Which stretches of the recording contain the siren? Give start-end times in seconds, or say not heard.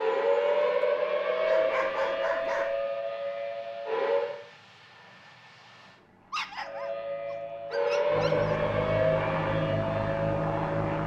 0.0-4.4, 6.6-11.0.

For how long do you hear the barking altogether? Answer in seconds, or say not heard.
4 s.